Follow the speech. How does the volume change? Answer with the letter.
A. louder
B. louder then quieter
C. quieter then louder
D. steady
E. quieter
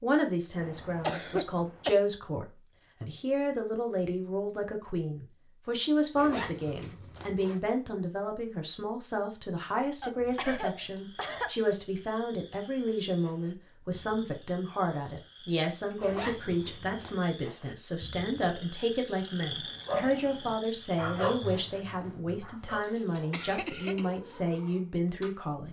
D.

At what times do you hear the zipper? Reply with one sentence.
You can hear the zipper from 6.2 to 7.6 s and from 16.0 to 17.1 s.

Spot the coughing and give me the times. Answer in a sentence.
The coughing can be heard from 0.6 to 1.9 s, from 10.0 to 11.6 s and from 23.3 to 24.1 s.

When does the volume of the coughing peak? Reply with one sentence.
The volume of the coughing peaks at 1 second.